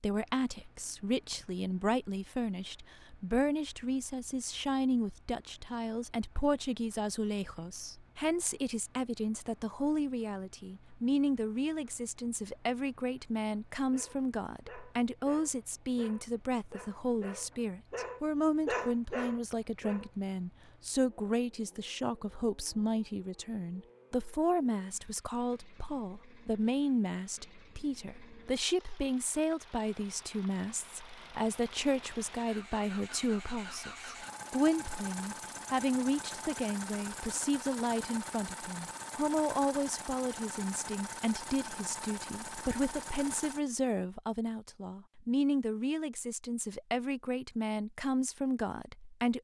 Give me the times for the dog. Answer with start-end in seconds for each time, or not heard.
13.9-20.1.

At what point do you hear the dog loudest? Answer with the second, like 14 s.
19 s.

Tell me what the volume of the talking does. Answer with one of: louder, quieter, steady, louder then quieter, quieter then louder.
steady.